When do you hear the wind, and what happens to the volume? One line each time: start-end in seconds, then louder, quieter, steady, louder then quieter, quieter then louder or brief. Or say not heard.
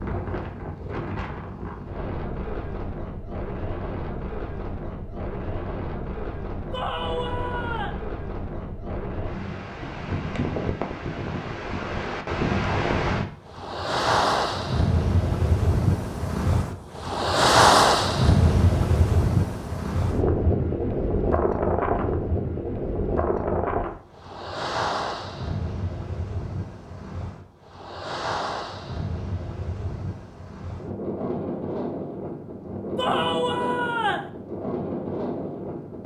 0.0-36.0 louder then quieter.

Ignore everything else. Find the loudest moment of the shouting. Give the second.
33 s.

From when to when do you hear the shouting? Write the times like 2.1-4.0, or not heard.
6.7-8.0, 33.0-34.3.